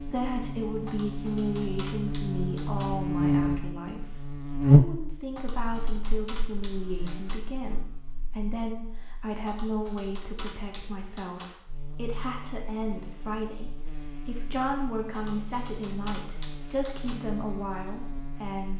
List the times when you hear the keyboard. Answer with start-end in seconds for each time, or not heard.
0.8-2.9, 5.3-7.3, 9.4-11.4, 15.1-17.1.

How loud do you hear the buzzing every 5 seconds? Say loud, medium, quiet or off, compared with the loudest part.
loud, quiet, quiet, quiet.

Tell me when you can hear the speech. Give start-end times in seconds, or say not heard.
0.0-18.7.